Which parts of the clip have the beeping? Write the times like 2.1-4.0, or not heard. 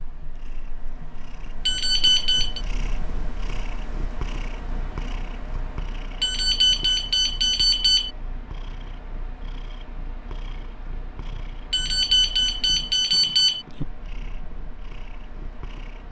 1.6-2.6, 6.2-8.1, 11.7-13.7.